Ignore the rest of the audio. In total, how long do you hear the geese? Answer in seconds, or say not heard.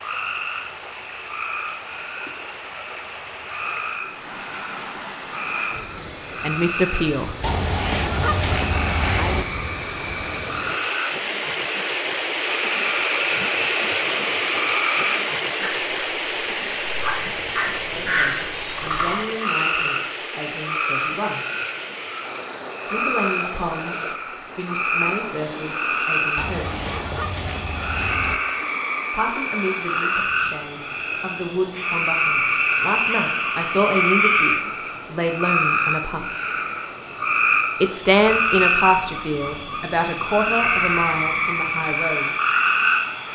4 s.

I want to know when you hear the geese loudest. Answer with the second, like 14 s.
8 s.